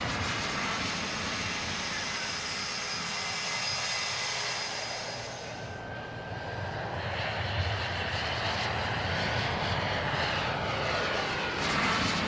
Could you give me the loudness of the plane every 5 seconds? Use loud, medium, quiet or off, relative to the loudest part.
medium, loud, loud.